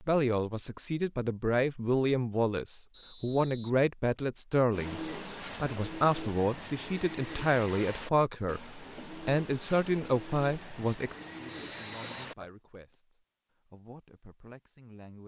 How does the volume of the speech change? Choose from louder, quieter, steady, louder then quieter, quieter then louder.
quieter.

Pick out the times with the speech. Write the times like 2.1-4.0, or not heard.
0.0-15.2.